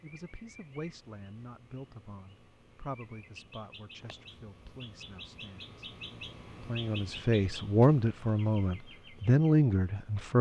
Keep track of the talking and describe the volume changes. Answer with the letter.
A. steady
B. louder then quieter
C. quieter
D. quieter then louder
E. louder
D.